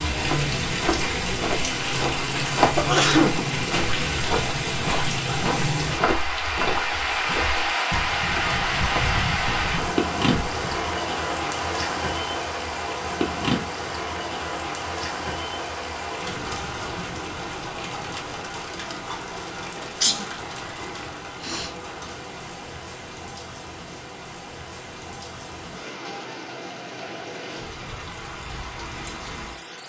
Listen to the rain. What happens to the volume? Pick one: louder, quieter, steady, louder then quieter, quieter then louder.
quieter.